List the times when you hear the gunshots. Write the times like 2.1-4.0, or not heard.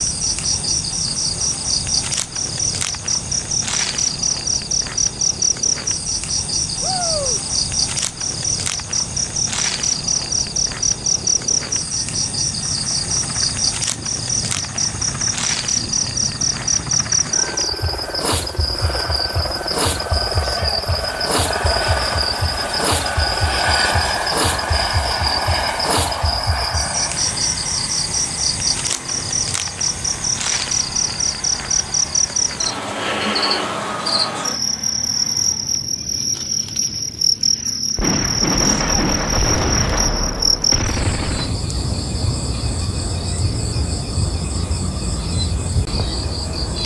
38.0-41.5.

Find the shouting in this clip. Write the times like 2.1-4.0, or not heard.
6.8-7.4, 20.4-20.9, 38.6-39.0.